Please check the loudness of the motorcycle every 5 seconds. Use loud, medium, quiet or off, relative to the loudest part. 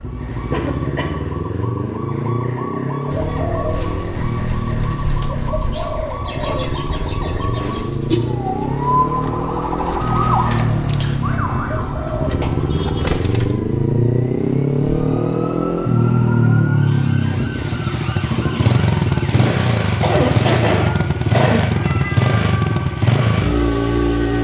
medium, medium, loud, loud, loud.